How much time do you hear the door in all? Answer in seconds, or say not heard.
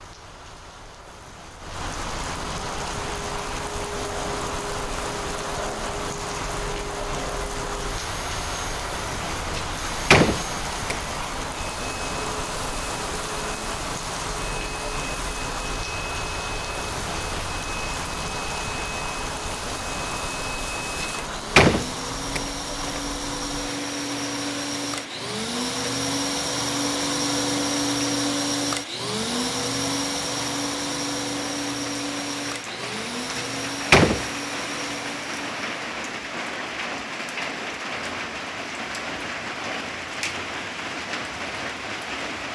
4 s.